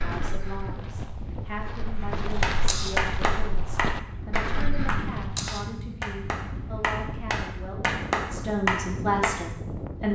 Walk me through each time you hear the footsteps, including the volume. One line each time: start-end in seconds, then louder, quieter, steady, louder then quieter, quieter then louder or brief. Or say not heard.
0.0-5.3 louder.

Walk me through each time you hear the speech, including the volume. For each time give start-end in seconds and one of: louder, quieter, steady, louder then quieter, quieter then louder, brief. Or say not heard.
0.0-10.1 louder.